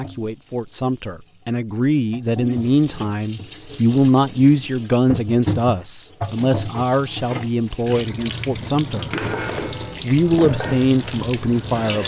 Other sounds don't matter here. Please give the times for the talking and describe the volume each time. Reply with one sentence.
The talking can be heard from 0.0 to 9.2 s, getting louder then quieter; and briefly from 10.0 to 12.0 s.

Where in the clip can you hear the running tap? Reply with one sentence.
You can hear the running tap from 0.0 to 12.0 s.